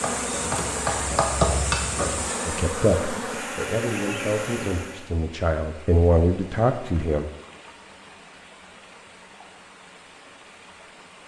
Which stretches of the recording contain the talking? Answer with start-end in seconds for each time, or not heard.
2.5-7.2.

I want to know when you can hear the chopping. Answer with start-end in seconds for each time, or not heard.
0.0-2.3.